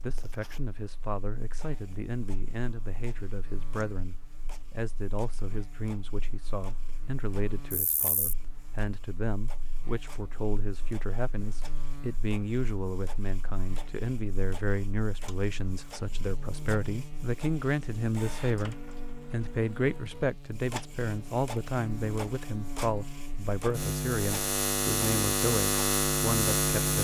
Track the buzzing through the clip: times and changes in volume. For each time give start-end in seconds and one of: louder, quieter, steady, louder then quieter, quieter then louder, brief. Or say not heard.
0.0-27.0 louder.